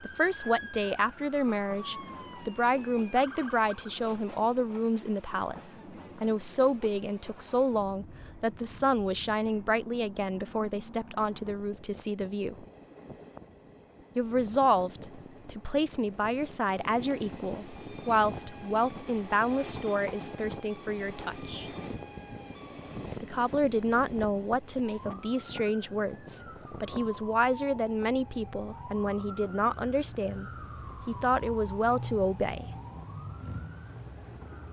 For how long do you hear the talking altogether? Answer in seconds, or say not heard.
30 s.